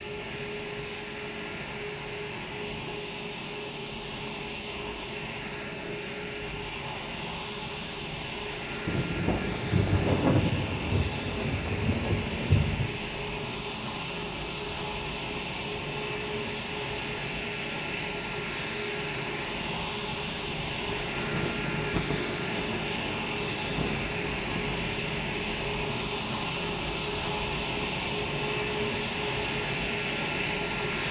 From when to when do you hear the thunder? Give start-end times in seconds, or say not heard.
8.8-12.9, 20.9-24.9.